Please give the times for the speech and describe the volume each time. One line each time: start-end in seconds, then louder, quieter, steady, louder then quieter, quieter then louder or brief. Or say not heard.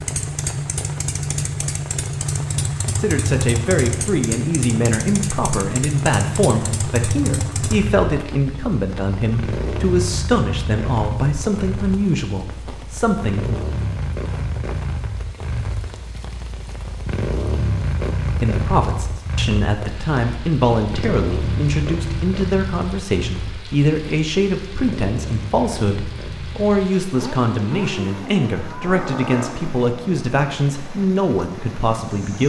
3.0-13.6 steady
18.4-32.4 steady.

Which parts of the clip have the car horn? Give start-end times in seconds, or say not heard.
not heard.